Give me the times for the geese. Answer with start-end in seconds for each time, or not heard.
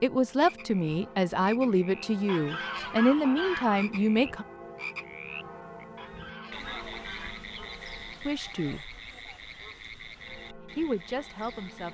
2.2-3.9, 6.0-7.5.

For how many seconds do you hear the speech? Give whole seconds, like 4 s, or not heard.
6 s.